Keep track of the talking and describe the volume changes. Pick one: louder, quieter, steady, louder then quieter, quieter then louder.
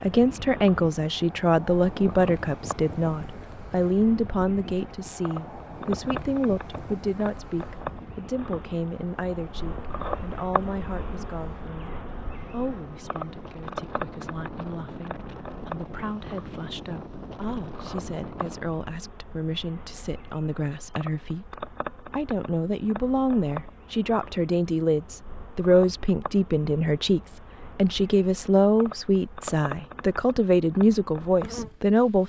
quieter then louder.